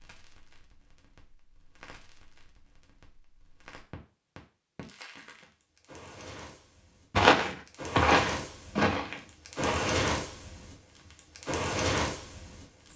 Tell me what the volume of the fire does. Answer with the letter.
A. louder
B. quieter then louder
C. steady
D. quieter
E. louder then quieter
A.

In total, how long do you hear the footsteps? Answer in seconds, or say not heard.
3 s.